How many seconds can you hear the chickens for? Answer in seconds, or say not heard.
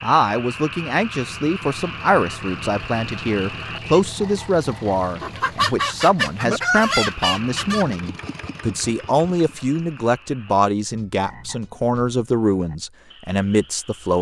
3 s.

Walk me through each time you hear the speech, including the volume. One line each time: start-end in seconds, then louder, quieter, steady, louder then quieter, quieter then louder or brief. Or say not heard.
0.0-14.1 steady.